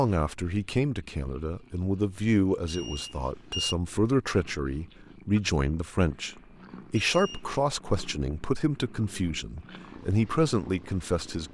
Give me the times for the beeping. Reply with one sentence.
You can hear the beeping from 2.6 to 3.8 s and from 7.0 to 7.7 s.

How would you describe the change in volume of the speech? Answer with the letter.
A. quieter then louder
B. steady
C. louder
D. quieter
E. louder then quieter
B.